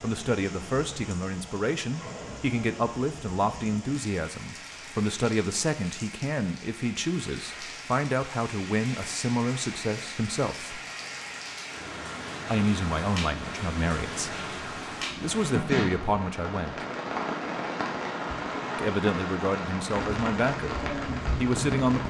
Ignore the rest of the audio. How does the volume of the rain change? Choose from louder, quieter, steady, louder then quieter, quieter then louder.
louder.